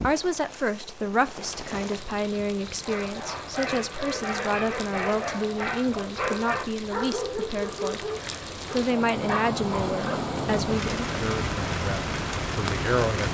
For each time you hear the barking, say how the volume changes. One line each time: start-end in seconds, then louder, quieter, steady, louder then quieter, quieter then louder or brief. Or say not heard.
2.8-10.2 steady.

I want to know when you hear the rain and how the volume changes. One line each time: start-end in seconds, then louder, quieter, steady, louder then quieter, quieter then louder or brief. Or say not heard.
0.0-13.2 louder.